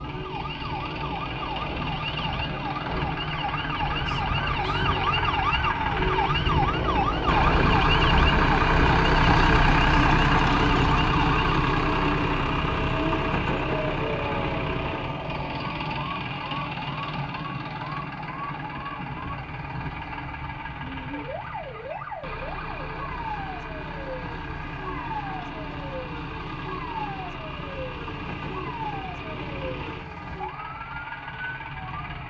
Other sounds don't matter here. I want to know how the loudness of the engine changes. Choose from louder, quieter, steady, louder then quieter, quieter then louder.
louder then quieter.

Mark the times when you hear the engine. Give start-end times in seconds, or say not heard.
0.0-32.2.